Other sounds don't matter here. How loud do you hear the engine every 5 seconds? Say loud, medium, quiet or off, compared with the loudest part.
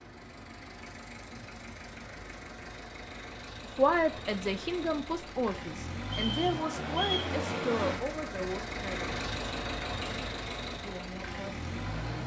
medium, loud, loud.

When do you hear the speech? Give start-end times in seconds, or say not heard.
3.8-9.2, 10.8-12.1.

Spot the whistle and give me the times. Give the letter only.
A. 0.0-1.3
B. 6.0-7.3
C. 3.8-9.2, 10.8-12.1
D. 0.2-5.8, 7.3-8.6
B.